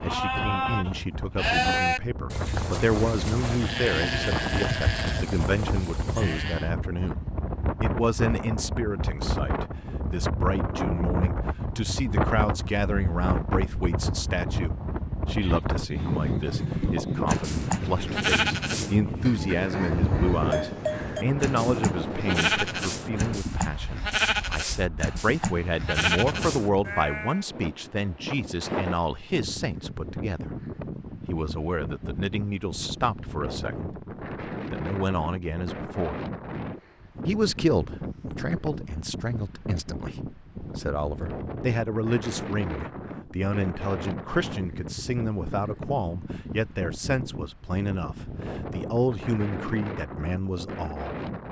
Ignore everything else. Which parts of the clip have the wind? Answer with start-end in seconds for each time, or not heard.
0.0-51.4.